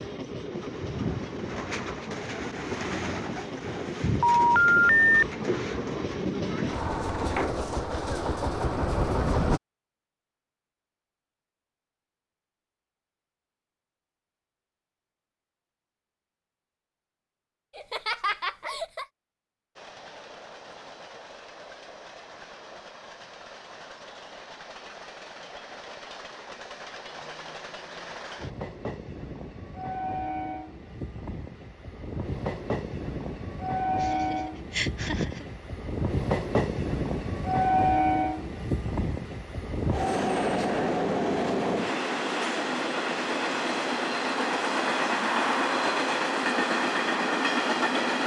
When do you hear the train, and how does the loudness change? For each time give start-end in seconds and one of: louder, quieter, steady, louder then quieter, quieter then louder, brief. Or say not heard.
0.0-9.6 louder
19.8-48.2 louder.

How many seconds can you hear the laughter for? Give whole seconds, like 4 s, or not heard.
3 s.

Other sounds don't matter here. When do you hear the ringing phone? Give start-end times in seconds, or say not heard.
4.2-5.2.